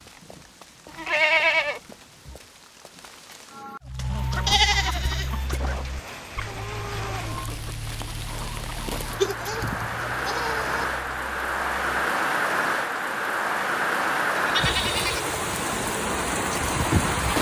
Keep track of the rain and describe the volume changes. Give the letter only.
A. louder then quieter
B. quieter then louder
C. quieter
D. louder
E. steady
D.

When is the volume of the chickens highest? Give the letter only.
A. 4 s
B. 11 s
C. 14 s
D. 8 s
A.